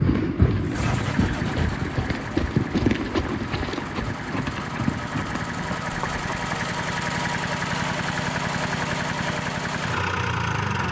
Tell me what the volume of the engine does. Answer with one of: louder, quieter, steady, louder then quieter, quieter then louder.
louder.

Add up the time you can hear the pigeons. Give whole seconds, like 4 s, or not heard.
not heard.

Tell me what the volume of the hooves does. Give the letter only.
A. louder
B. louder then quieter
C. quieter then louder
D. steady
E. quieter
E.